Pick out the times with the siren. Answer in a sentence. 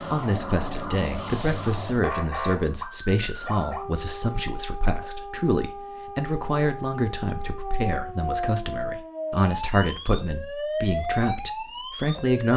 You can hear the siren from 0.0 to 12.5 s.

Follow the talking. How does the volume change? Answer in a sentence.
The volume of the talking stays about the same.